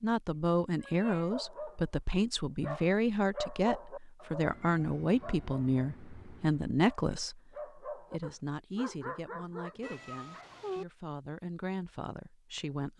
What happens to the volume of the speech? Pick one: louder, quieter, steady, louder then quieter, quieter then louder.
quieter.